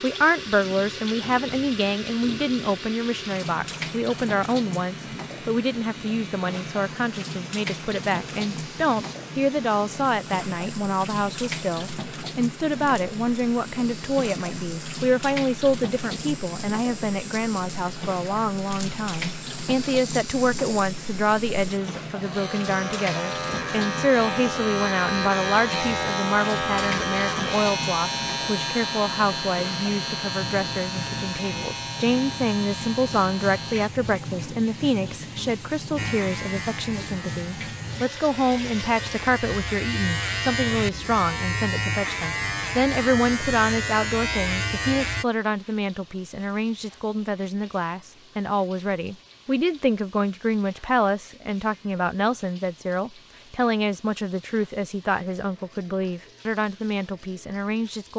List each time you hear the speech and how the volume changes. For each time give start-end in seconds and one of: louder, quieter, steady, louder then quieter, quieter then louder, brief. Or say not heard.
0.0-58.1 steady.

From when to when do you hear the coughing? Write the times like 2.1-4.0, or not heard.
not heard.